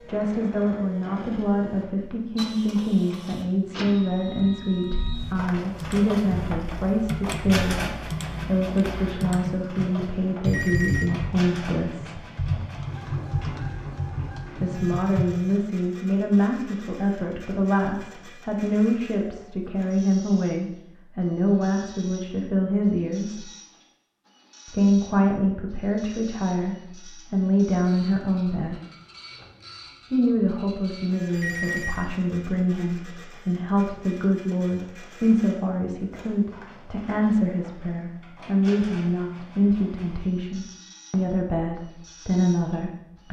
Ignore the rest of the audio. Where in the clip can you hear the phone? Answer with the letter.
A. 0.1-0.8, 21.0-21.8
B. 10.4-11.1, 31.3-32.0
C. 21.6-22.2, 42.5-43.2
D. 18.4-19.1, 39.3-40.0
B.